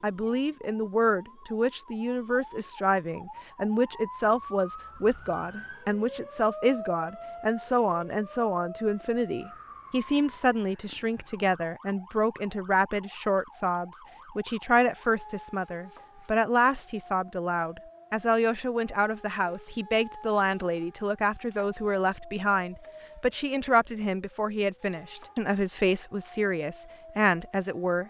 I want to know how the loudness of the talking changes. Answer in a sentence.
The volume of the talking stays about the same.